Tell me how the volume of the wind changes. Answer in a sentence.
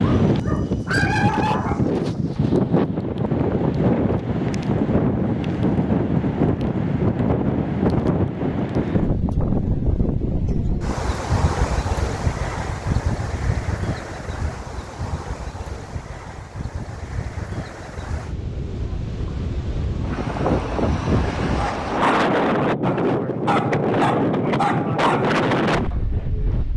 The volume of the wind goes down, then up.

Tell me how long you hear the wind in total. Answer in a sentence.
You can hear the wind for 27 seconds altogether.